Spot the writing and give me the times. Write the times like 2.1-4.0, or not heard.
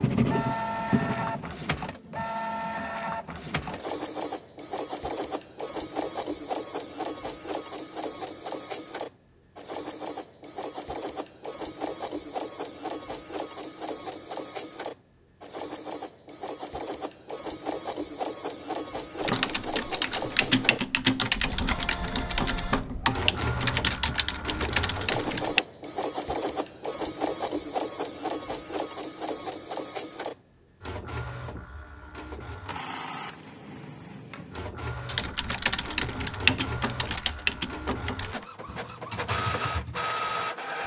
0.0-1.6.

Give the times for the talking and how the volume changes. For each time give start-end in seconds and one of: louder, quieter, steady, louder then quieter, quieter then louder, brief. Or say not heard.
not heard.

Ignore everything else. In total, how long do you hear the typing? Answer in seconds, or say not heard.
12 s.